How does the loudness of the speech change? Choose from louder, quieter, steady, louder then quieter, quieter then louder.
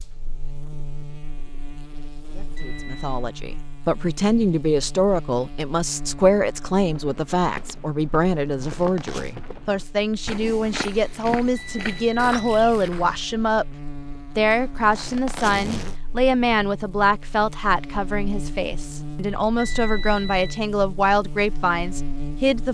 steady.